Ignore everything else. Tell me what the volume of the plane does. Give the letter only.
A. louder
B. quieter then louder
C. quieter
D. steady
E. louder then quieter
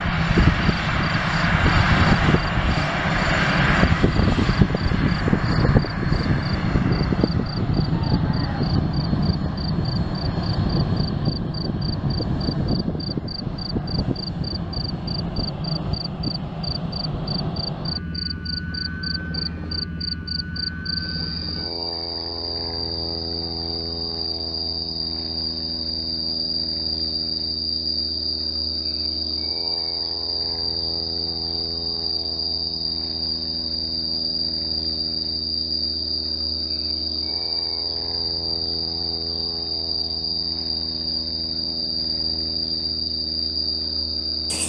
C.